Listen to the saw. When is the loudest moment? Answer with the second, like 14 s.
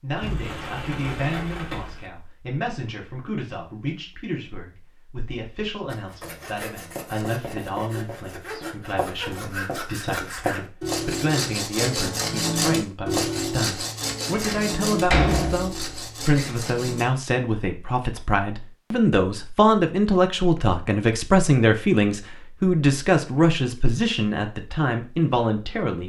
13 s.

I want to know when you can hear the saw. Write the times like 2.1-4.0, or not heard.
5.8-17.1.